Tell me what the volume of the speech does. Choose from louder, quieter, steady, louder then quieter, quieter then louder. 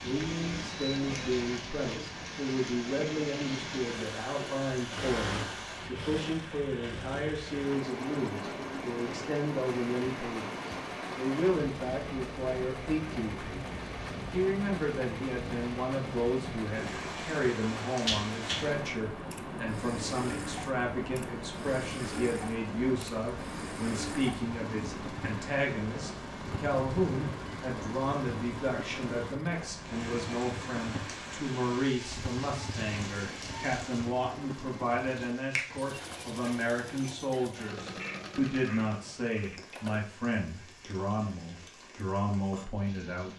steady.